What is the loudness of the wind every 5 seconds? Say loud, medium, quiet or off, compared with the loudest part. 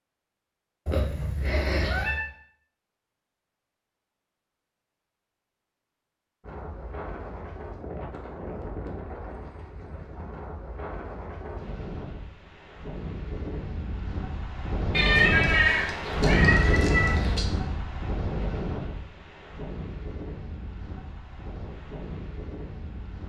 off, medium, medium, loud, quiet.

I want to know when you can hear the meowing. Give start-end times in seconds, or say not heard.
0.8-2.2, 14.9-17.4.